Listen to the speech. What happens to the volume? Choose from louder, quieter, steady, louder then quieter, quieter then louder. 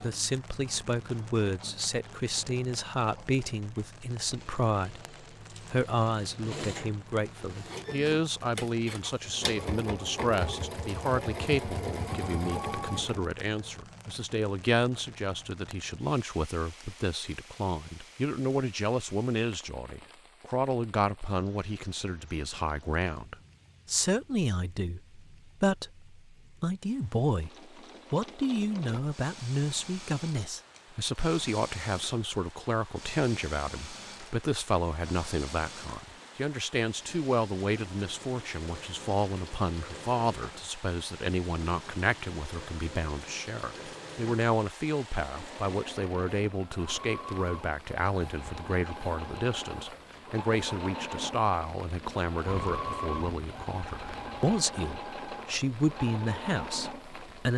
steady.